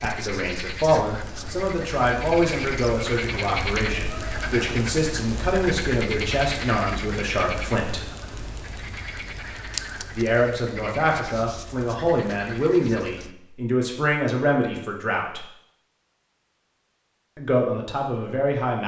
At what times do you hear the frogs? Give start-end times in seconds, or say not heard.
0.0-13.3.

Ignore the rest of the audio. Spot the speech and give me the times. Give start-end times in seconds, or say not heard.
0.0-8.1, 10.2-15.4, 17.4-18.8.